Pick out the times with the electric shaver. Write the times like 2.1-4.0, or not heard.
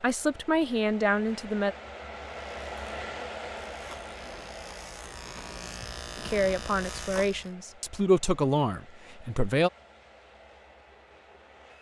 2.2-7.5.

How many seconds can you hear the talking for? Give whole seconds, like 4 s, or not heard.
5 s.